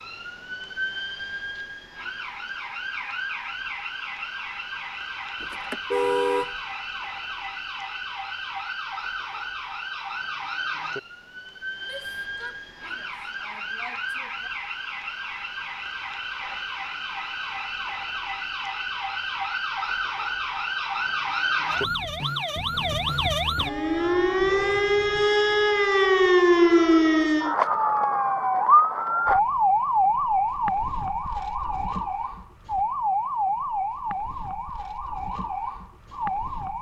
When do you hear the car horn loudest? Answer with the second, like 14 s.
6 s.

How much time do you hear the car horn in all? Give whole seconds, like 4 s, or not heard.
3 s.